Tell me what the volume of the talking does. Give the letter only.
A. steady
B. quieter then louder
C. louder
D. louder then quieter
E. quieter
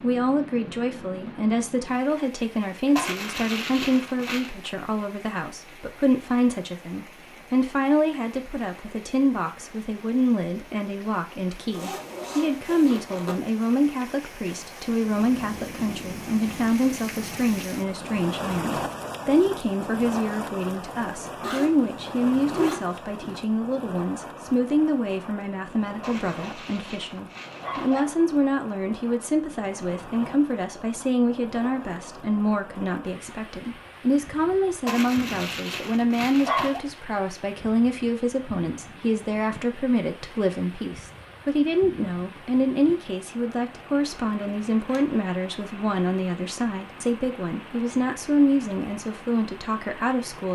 A.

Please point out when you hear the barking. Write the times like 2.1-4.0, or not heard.
3.0-4.5, 26.0-28.0, 34.9-36.8.